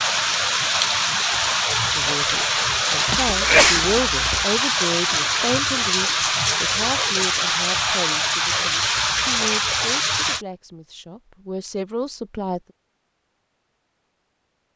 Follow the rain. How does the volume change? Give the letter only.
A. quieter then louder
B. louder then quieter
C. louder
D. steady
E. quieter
D.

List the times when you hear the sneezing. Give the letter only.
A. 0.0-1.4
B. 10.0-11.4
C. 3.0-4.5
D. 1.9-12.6
C.